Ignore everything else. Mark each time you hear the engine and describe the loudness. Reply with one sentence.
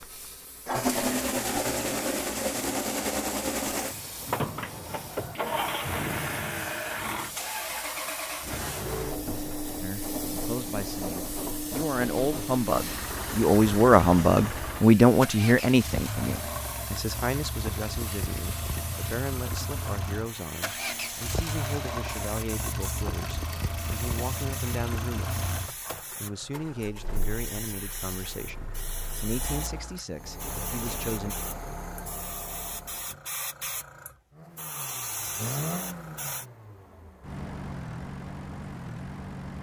The engine can be heard from 0.0 to 33.2 s, getting quieter; and from 34.3 to 39.5 s, getting quieter then louder.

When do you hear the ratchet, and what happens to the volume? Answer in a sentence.
You can't hear the ratchet here.